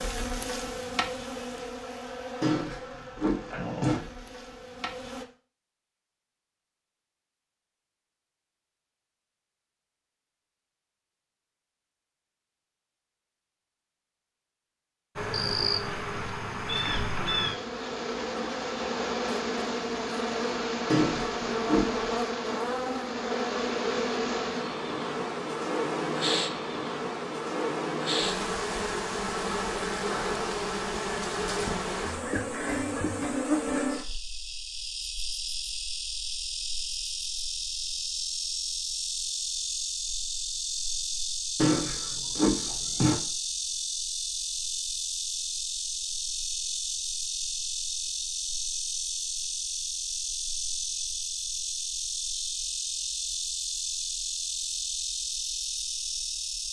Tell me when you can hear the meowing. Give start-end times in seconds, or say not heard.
2.4-4.0, 20.9-22.1, 41.5-43.1.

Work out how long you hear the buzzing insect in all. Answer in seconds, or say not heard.
47 s.